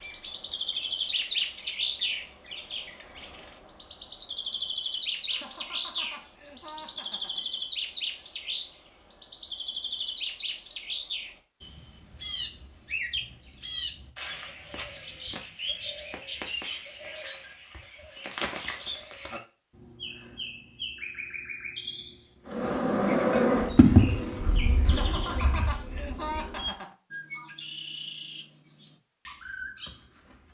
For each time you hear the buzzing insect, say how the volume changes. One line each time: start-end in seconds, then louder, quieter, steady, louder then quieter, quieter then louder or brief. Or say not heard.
22.5-26.7 quieter.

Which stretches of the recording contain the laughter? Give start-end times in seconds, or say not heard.
5.2-7.5, 24.9-26.9.